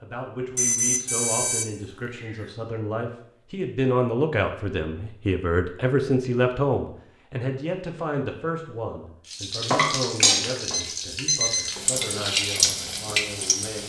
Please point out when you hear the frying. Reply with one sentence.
The frying can be heard from 9.3 to 13.8 s.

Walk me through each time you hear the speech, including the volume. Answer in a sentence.
You can hear the speech from 0.0 to 13.8 s, getting louder then quieter.